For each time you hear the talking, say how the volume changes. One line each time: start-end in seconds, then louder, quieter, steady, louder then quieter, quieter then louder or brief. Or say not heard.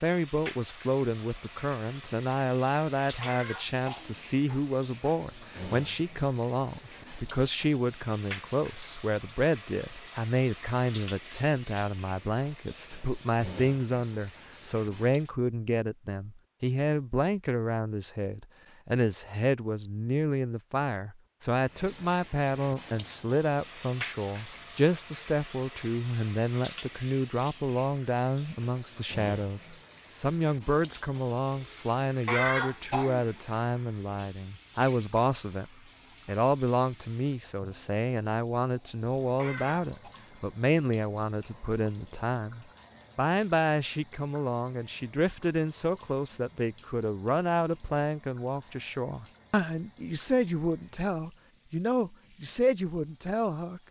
0.0-53.8 steady.